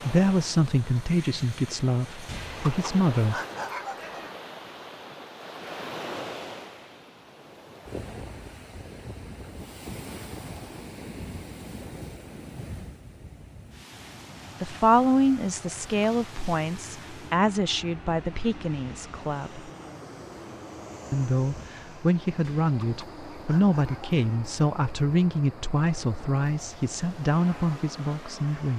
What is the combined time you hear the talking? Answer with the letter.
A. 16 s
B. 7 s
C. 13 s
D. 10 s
A.